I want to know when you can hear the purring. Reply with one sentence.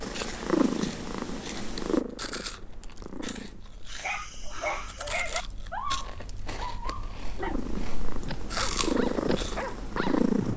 The purring can be heard from 0.0 to 3.6 s and from 7.4 to 10.5 s.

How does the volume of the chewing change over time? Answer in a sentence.
The volume of the chewing goes up.